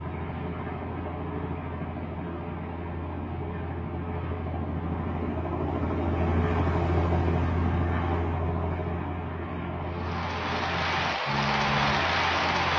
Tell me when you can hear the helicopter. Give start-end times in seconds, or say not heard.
0.0-12.7.